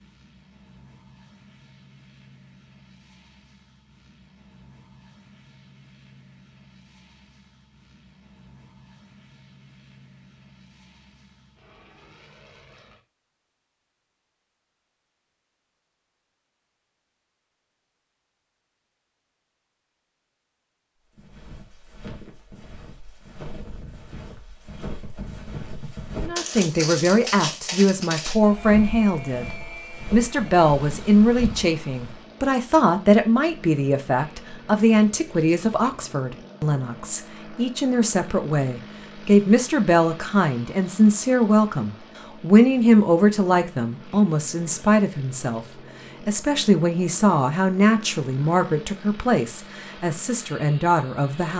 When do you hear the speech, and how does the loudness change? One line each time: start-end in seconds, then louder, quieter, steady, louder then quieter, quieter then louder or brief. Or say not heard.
26.1-51.5 steady.